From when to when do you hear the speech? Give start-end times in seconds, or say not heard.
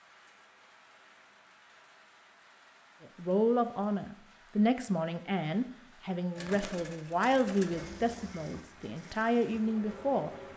3.1-10.3.